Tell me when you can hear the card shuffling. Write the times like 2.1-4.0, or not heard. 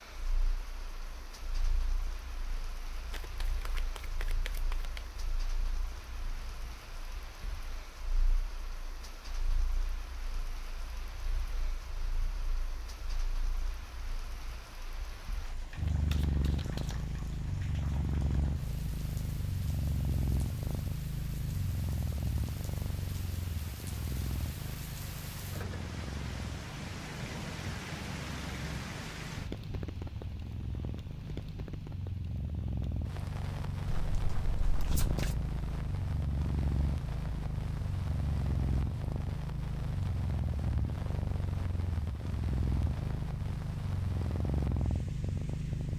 3.1-5.0, 15.8-16.9, 33.9-35.4.